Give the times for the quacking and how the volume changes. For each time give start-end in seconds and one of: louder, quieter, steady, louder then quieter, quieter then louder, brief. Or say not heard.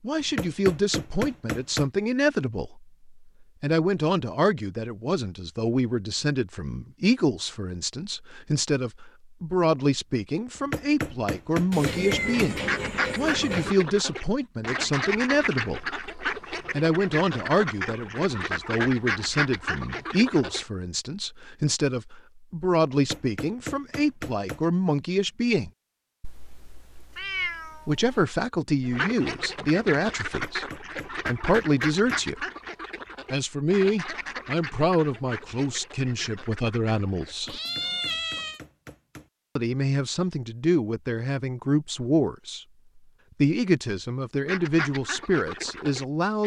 12.6-20.6 steady
28.9-37.4 quieter
44.5-46.4 brief.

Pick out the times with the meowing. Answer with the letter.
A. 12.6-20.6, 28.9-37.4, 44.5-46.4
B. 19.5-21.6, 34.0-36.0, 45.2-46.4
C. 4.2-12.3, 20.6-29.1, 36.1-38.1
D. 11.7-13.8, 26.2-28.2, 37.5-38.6
D.